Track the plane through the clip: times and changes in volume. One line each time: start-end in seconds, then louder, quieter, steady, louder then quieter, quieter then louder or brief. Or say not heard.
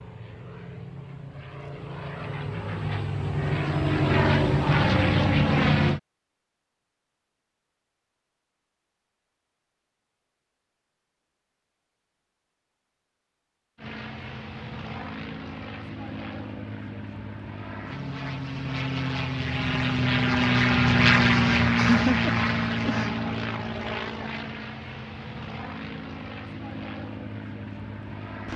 0.0-6.0 louder
13.8-28.5 louder then quieter.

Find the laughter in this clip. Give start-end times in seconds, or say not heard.
21.8-23.1.